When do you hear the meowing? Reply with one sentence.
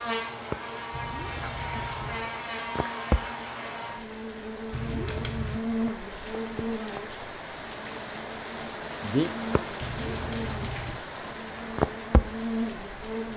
You can hear the meowing from 0.9 to 2.3 s, from 4.7 to 5.6 s and from 9.8 to 11.1 s.